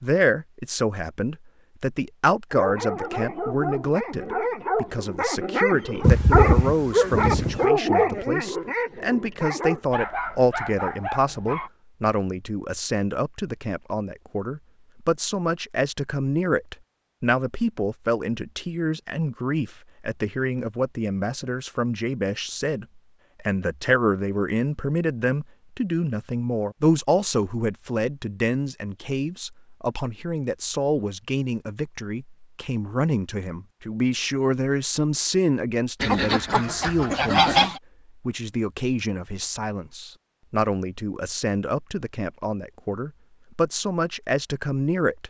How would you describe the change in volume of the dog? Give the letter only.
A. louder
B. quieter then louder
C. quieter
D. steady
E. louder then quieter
E.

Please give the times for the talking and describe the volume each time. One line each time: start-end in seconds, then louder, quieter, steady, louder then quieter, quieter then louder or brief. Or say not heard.
0.0-45.2 steady.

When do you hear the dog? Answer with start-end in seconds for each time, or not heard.
2.5-11.7.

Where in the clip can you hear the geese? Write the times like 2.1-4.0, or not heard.
6.0-7.7, 36.0-37.8.